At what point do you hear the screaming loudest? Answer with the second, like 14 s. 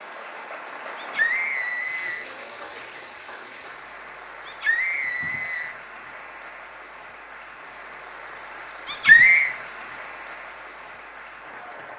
9 s.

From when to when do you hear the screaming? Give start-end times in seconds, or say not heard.
0.9-2.2, 4.5-5.8, 8.8-9.5.